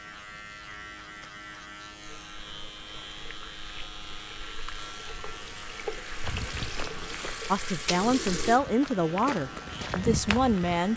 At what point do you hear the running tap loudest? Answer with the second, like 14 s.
8 s.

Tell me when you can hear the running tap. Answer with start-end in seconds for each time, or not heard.
2.0-8.6.